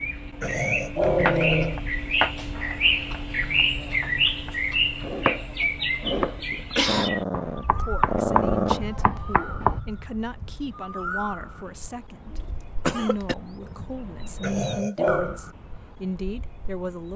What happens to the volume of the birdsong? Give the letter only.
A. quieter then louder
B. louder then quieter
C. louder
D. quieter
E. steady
D.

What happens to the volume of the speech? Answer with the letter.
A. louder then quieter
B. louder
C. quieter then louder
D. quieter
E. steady
E.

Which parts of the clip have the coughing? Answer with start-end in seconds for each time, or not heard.
6.5-7.1, 12.3-13.3.